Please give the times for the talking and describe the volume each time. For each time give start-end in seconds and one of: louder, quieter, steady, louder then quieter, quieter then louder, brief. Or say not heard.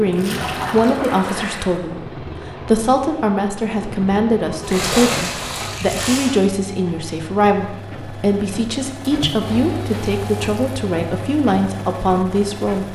0.0-12.9 steady.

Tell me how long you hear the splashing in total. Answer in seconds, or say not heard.
5 s.